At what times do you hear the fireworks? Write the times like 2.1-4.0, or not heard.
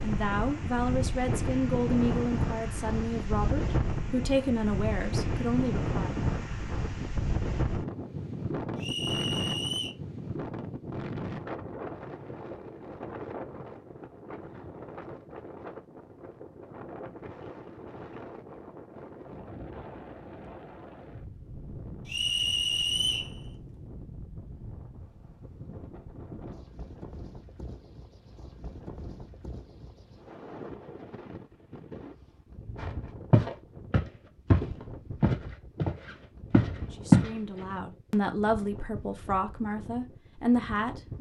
not heard.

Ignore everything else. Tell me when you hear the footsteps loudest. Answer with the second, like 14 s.
37 s.